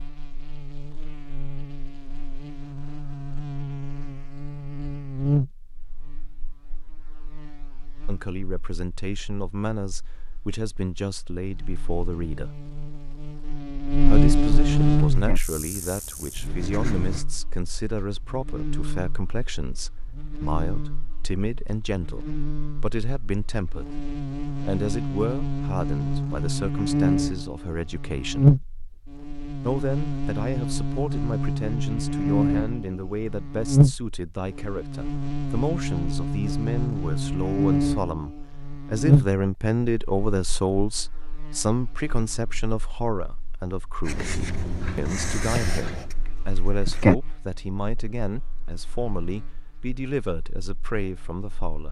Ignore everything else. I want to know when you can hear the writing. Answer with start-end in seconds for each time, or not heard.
15.1-17.2, 44.0-47.1.